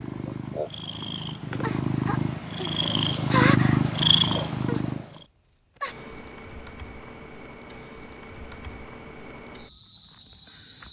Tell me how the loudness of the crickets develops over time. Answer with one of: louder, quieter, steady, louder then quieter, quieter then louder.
louder then quieter.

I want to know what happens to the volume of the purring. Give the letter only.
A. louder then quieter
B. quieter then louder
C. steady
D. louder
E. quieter
D.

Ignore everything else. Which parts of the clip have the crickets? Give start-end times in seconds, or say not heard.
0.0-10.8.